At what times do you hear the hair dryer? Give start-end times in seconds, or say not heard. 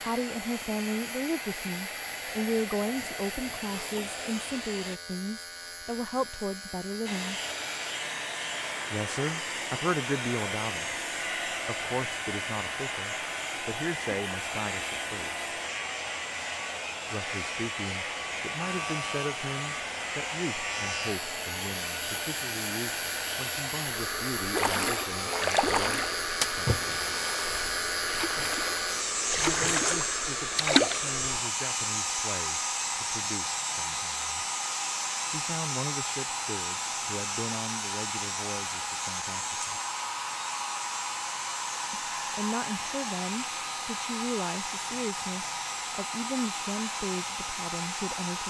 0.0-5.0, 7.0-48.4.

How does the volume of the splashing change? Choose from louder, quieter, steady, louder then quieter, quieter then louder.
quieter then louder.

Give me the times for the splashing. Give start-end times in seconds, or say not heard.
24.5-31.1.